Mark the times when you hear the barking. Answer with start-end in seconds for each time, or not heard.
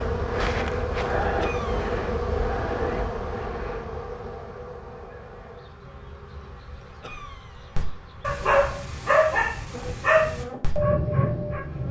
7.8-11.8.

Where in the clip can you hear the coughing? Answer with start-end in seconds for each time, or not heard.
1.4-1.9, 7.0-7.7.